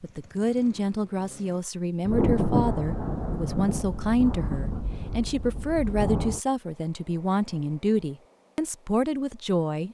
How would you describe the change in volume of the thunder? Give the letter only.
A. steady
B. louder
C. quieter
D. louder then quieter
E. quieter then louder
C.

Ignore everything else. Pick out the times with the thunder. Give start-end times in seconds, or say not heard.
2.0-6.4.